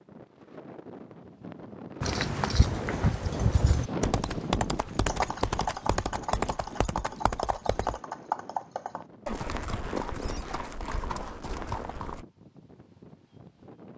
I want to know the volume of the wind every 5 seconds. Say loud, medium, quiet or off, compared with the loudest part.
loud, medium, quiet.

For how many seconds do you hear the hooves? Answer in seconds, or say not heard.
10 s.